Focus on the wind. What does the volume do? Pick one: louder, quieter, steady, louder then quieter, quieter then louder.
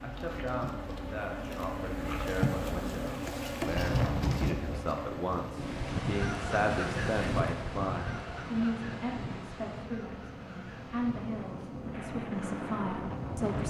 quieter then louder.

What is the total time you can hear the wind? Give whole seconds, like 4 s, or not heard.
10 s.